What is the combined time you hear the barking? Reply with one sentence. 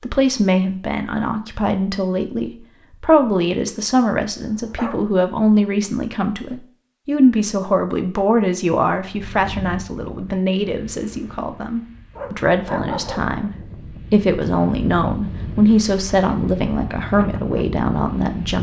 You can hear the barking for 2 seconds altogether.